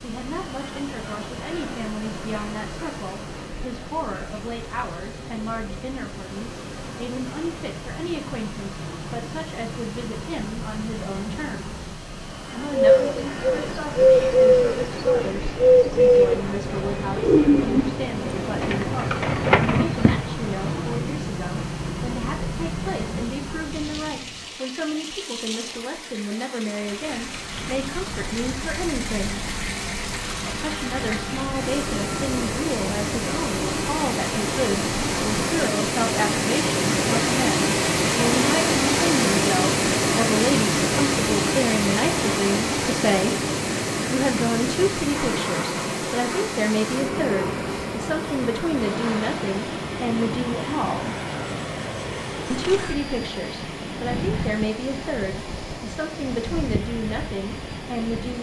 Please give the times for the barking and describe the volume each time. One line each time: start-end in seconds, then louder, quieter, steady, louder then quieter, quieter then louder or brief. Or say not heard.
not heard.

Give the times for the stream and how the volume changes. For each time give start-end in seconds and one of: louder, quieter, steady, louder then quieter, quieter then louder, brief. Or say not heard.
0.0-58.3 louder then quieter.